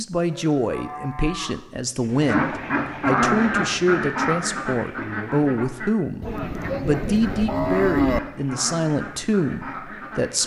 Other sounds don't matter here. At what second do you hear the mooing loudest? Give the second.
8 s.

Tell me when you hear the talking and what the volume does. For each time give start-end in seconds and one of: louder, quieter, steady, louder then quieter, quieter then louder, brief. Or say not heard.
0.0-10.4 steady.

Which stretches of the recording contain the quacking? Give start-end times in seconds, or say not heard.
2.0-10.4.